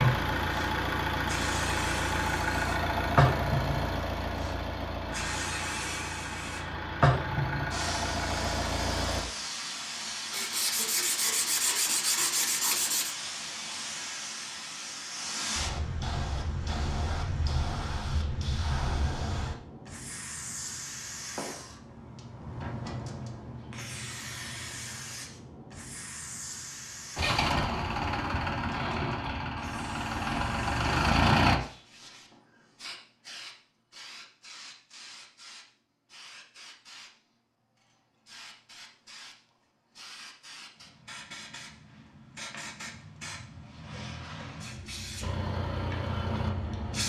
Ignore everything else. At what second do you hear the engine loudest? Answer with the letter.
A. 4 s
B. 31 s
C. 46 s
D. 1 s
B.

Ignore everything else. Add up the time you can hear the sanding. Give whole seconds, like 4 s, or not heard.
3 s.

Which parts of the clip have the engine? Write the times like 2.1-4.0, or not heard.
0.0-9.2, 27.1-31.6, 45.2-47.0.